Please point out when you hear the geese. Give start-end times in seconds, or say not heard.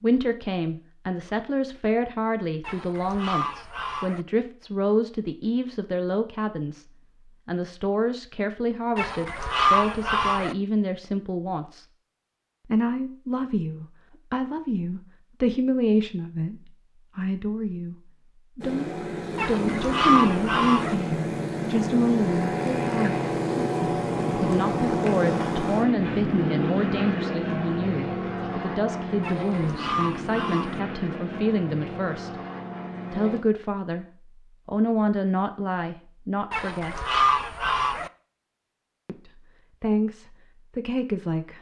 2.6-4.2, 8.9-10.6, 19.4-20.9, 29.2-30.8, 36.5-38.1.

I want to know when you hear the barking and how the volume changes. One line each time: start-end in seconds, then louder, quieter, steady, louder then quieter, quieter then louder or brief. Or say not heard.
not heard.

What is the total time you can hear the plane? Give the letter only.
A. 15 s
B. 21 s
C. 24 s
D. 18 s
A.